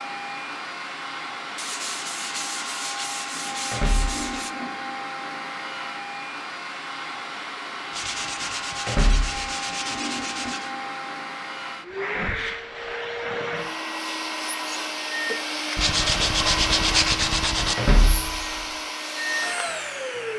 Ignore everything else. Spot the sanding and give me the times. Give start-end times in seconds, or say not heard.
1.6-4.5, 7.9-10.7, 15.8-17.8.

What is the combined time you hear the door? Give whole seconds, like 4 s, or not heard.
2 s.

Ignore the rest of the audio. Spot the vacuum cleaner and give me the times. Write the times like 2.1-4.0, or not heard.
0.0-20.3.